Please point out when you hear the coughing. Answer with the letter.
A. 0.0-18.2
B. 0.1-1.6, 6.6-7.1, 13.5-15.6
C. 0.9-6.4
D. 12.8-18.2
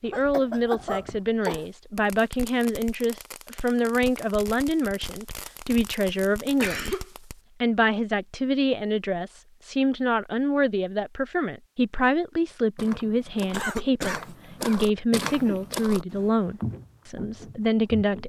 B.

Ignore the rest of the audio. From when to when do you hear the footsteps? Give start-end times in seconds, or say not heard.
12.8-18.2.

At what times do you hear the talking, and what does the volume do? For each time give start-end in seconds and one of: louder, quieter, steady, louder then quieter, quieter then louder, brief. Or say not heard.
0.0-18.2 steady.